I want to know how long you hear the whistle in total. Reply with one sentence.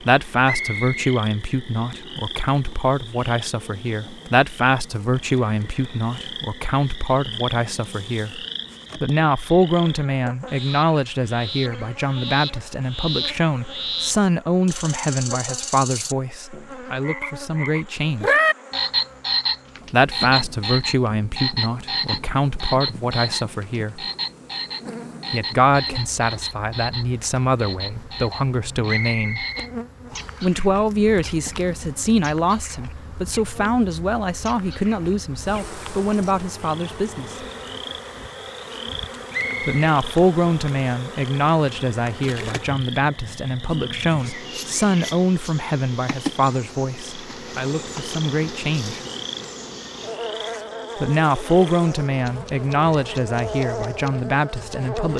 You can hear the whistle for 3 seconds altogether.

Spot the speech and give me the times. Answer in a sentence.
The speech can be heard from 0.0 to 18.4 s, from 19.9 to 24.1 s, from 25.3 to 29.4 s, from 30.4 to 37.4 s, from 39.6 to 49.0 s and from 51.0 to 55.1 s.